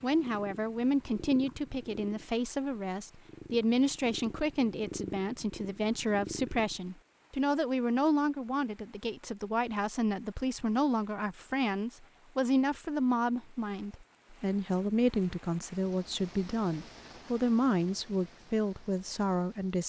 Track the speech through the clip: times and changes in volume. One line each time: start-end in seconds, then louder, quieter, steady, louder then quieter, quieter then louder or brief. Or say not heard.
0.0-19.8 steady.